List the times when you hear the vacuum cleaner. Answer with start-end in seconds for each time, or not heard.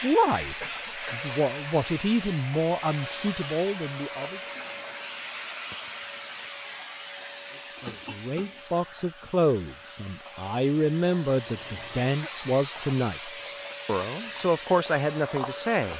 0.0-15.9.